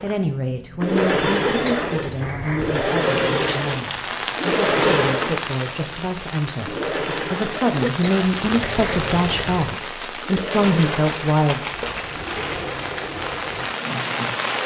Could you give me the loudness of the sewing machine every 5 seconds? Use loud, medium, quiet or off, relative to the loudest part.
loud, medium, medium.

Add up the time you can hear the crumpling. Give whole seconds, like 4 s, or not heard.
3 s.